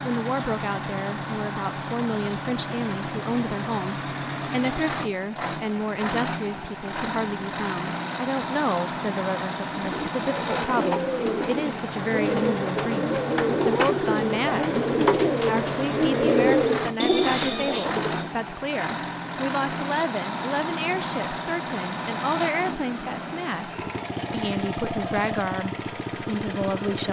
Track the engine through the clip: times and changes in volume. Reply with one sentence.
You can hear the engine from 0.0 to 27.0 s, at a steady volume.